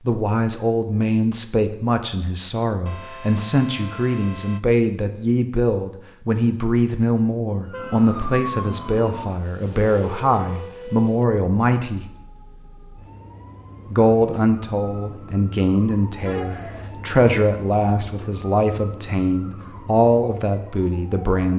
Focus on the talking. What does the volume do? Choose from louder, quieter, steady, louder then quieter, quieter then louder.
steady.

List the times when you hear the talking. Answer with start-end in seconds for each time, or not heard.
0.1-12.1, 13.9-21.5.